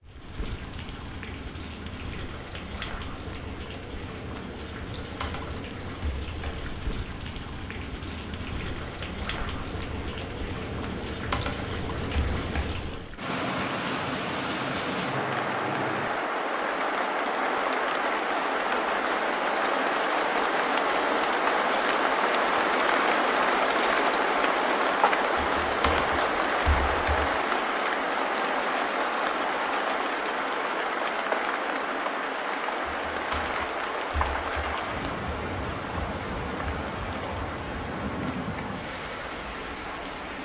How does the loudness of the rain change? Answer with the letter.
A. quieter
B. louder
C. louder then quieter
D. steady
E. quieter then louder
C.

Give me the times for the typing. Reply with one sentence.
You can hear the typing from 4.7 to 6.7 s, from 11.1 to 12.8 s, from 25.4 to 27.4 s and from 32.9 to 34.9 s.